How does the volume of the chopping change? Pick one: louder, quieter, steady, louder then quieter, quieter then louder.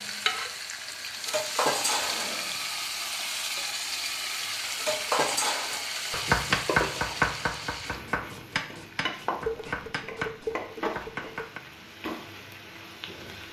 quieter.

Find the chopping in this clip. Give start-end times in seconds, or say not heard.
6.1-11.6.